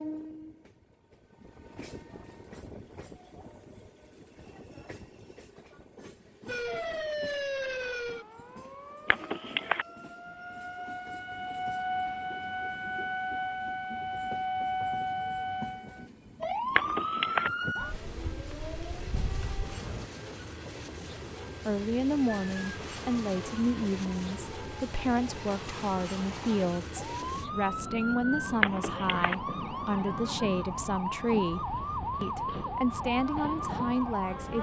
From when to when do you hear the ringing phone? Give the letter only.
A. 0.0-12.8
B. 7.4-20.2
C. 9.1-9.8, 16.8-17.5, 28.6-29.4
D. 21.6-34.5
C.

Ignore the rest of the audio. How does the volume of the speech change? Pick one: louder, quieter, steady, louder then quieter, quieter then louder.
steady.